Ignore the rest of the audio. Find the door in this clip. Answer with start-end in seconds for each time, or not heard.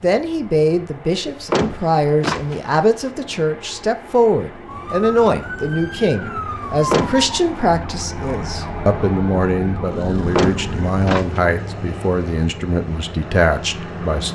1.2-3.1, 6.7-7.3, 10.3-11.4.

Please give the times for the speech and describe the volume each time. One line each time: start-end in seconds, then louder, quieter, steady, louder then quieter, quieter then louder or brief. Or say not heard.
0.0-14.3 steady.